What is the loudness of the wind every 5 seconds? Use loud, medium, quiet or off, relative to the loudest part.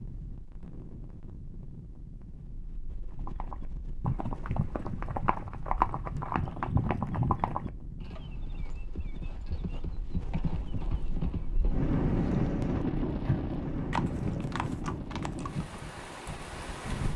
quiet, quiet, loud, medium.